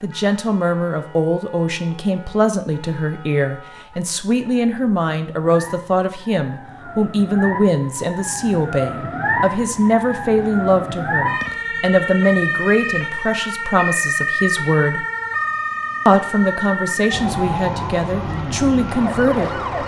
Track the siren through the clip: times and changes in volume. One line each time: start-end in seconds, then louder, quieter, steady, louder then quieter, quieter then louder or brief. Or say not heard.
0.0-19.8 louder.